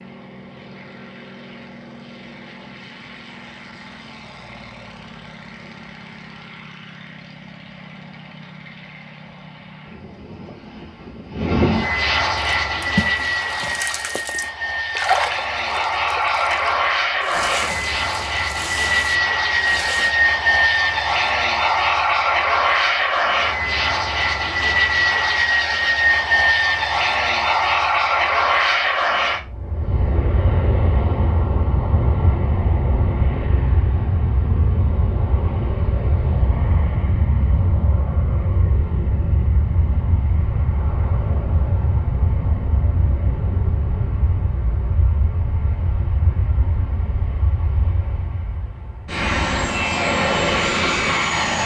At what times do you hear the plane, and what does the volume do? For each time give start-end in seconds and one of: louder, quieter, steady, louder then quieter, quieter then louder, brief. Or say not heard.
0.0-51.6 louder then quieter.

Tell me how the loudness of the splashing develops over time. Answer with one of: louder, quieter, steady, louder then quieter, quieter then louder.
louder then quieter.